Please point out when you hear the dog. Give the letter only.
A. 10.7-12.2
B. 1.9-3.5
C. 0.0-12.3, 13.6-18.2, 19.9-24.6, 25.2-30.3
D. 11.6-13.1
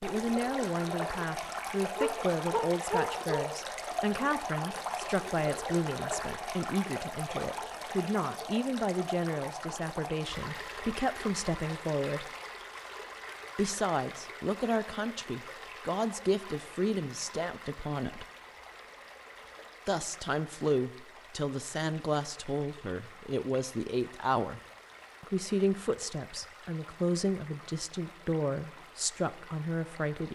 B.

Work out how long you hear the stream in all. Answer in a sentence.
You can hear the stream for 30 seconds altogether.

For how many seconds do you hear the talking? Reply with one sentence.
You can hear the talking for 27 seconds altogether.